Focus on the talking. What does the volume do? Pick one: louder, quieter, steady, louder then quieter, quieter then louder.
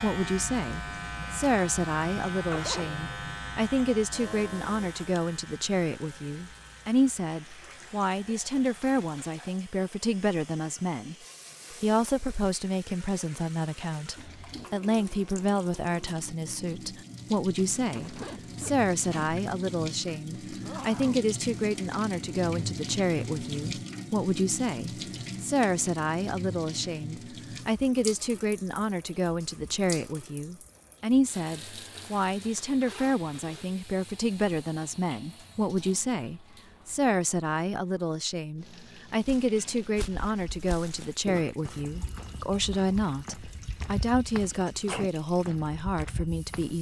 steady.